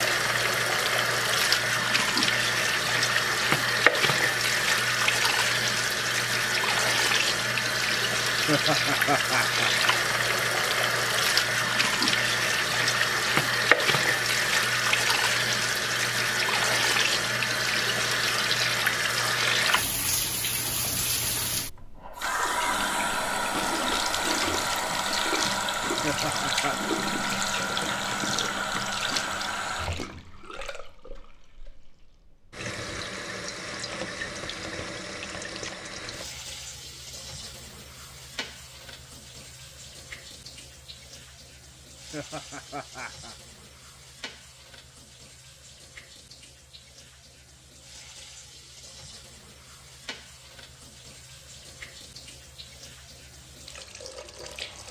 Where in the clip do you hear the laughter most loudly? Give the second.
9 s.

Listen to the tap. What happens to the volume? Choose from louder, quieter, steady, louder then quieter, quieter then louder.
quieter.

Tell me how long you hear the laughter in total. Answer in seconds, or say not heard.
3 s.